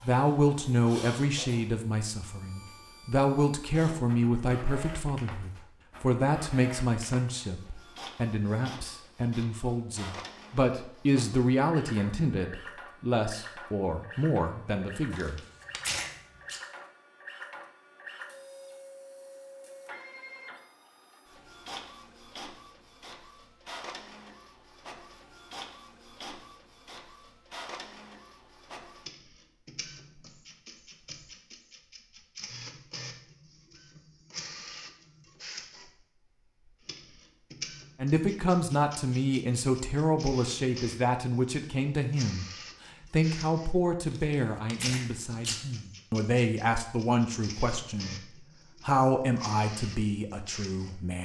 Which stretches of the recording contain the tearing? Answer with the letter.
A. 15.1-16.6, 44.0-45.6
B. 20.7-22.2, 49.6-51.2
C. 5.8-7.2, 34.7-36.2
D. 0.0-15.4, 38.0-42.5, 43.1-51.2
A.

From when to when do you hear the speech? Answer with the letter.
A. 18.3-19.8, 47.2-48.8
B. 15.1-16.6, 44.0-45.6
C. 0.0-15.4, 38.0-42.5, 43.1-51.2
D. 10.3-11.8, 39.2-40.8
C.